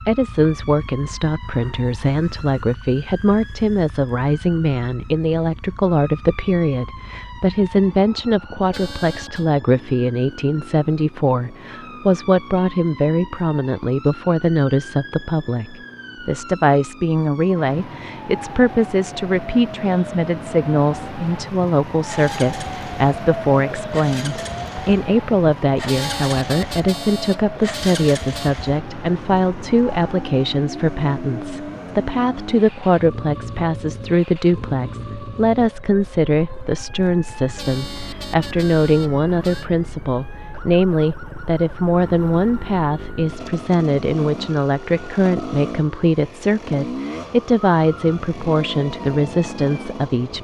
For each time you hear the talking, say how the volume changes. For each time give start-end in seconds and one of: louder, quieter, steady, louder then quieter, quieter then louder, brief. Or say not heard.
0.1-50.3 steady.